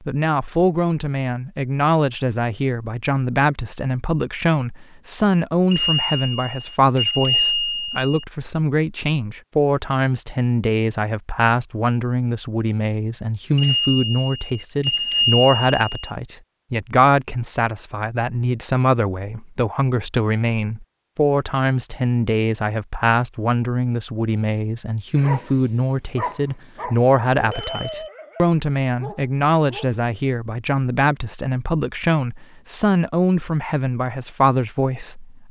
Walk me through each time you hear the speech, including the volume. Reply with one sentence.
You can hear the speech from 0.0 to 35.4 s, at a steady volume.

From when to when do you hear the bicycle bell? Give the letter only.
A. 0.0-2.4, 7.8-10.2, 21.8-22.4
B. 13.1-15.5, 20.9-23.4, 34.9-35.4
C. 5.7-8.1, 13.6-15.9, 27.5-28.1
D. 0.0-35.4
C.